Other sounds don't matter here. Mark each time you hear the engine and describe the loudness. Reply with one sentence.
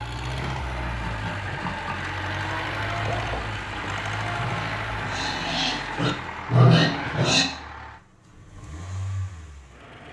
The engine can be heard from 0.0 to 10.0 s, getting quieter.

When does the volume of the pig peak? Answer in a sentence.
The loudest moment of the pig is at 7 seconds.